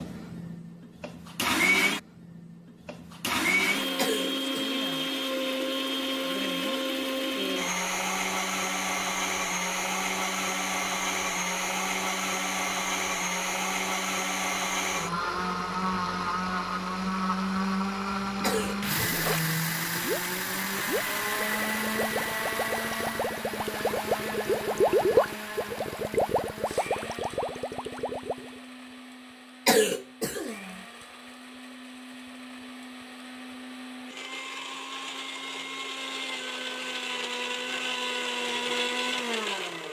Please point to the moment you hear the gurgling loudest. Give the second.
25 s.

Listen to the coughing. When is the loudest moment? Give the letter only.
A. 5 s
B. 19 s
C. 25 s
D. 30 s
D.